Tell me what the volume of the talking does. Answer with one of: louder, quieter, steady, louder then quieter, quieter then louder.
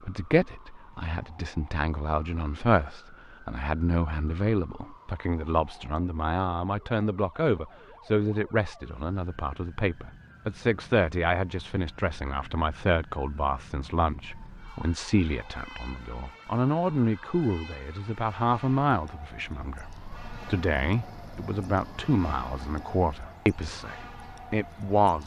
steady.